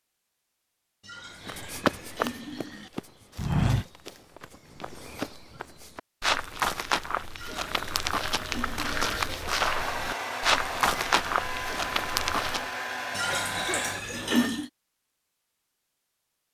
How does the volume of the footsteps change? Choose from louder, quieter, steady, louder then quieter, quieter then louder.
quieter then louder.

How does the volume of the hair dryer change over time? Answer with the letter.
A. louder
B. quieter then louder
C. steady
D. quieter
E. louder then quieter
C.